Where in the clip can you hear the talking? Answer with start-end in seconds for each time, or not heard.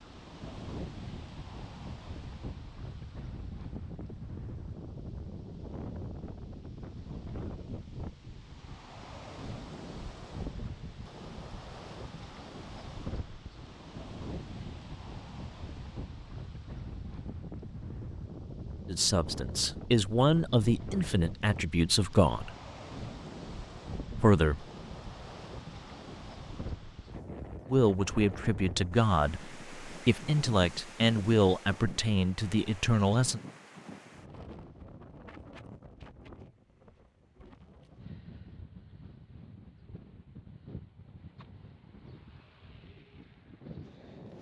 18.9-22.6, 24.2-24.6, 27.6-33.4.